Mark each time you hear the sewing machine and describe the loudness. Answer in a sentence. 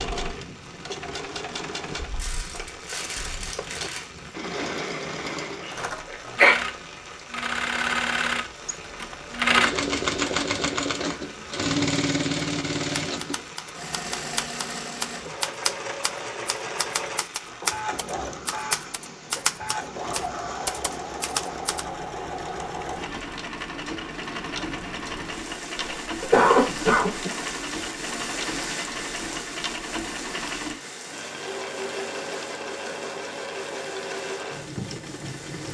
The sewing machine can be heard from 0.0 to 35.6 s, getting louder then quieter.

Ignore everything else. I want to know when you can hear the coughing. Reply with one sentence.
The coughing can be heard from 5.7 to 6.5 s and from 25.8 to 27.3 s.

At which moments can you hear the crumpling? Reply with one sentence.
You can hear the crumpling from 2.1 to 4.1 s.